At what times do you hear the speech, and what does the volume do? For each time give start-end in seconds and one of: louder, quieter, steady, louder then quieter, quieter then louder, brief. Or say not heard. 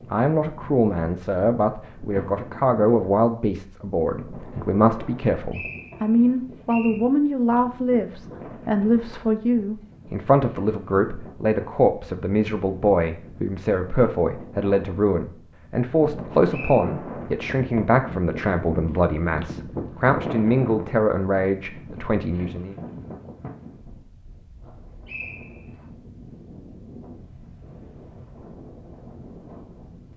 0.1-22.8 steady.